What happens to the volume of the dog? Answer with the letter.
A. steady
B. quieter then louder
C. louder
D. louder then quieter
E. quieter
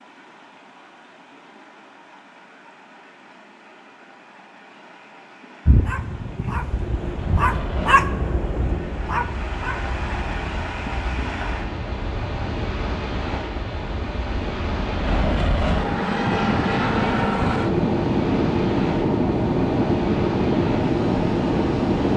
D.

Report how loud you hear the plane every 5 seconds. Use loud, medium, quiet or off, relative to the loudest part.
off, quiet, quiet, loud, loud.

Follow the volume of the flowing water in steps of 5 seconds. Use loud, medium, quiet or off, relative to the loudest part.
quiet, medium, loud, loud, loud.